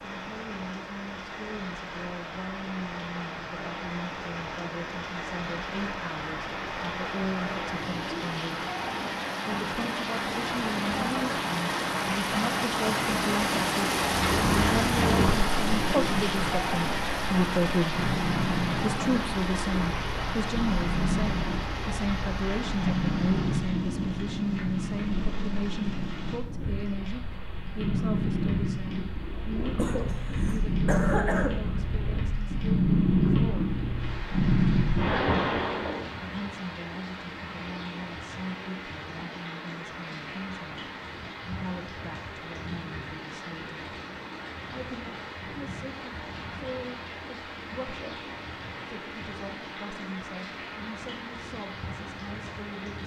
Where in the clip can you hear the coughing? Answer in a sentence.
The coughing can be heard from 29.8 to 31.6 s.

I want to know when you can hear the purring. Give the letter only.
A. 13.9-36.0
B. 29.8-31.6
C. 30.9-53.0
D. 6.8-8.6
A.